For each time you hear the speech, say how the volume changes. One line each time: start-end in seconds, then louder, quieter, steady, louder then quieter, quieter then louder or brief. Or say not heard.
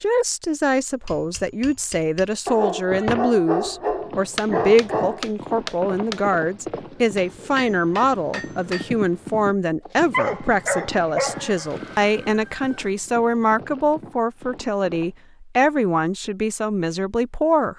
0.0-17.7 steady.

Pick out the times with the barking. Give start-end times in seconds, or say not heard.
2.5-5.2, 9.8-12.1.